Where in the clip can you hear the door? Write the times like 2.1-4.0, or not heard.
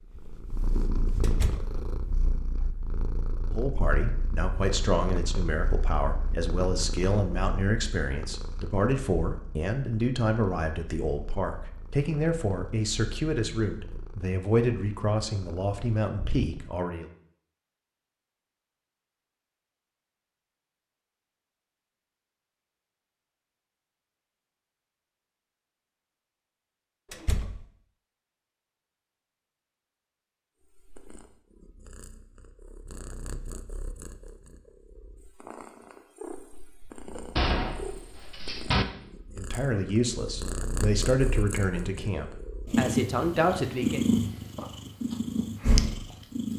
1.2-1.8, 27.1-27.6, 37.4-38.9.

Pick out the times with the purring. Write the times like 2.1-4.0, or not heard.
0.1-16.8, 30.6-46.5.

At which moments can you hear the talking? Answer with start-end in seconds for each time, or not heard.
3.5-17.1, 39.4-44.0.